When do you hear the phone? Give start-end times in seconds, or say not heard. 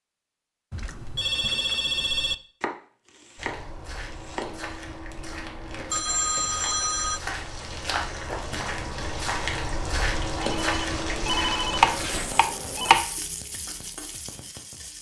0.7-2.4, 5.9-7.2, 10.4-13.1.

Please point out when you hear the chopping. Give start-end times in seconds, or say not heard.
2.6-4.5, 11.8-13.1.